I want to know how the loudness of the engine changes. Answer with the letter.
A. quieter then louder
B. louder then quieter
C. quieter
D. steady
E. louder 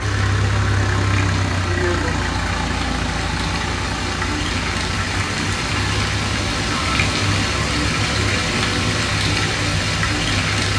C.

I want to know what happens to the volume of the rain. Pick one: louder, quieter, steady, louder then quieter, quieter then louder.
louder.